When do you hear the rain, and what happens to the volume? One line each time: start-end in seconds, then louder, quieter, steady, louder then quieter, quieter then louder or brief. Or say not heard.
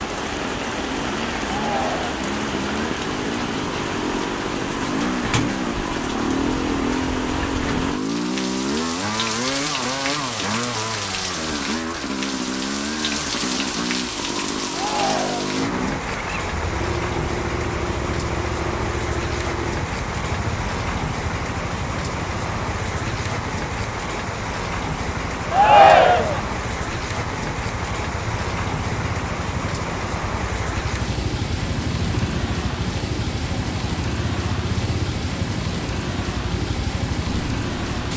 0.0-38.1 steady.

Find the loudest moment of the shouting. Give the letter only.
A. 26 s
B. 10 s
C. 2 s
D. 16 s
A.